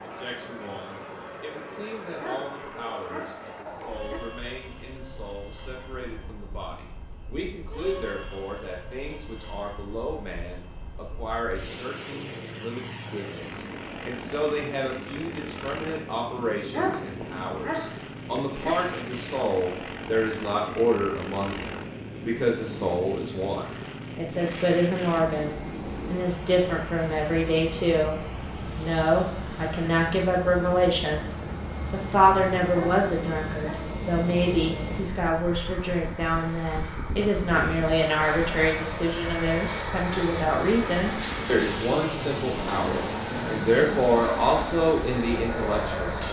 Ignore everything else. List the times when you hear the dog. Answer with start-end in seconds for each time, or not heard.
2.1-4.2, 16.7-18.8, 32.7-34.0.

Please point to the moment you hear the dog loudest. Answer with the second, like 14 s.
17 s.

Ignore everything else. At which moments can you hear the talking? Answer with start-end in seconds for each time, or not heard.
0.0-46.2.